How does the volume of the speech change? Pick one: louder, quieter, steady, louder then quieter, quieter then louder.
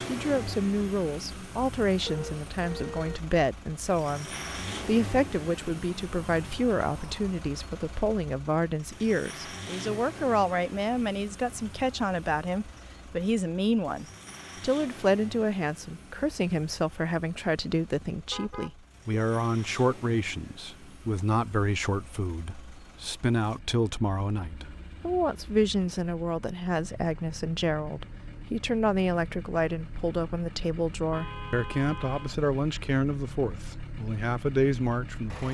steady.